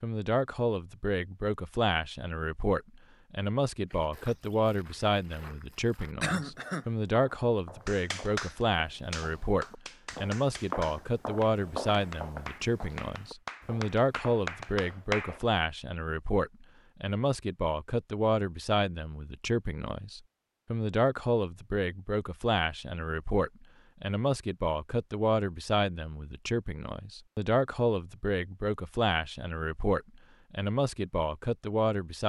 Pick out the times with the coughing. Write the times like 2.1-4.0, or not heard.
6.2-6.8.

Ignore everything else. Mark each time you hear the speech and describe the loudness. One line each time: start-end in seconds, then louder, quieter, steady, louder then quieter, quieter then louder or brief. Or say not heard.
0.0-32.2 steady.